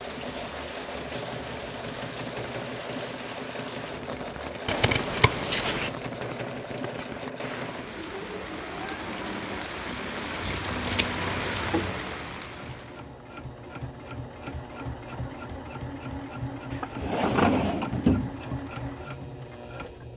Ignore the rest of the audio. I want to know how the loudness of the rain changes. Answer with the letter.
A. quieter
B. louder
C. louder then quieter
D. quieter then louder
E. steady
B.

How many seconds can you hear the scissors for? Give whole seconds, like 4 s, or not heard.
3 s.